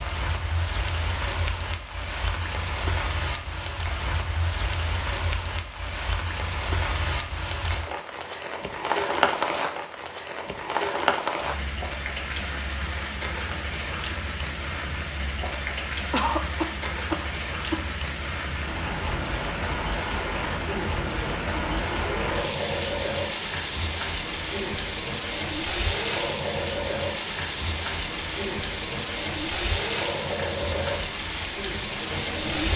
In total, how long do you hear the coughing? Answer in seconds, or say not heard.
2 s.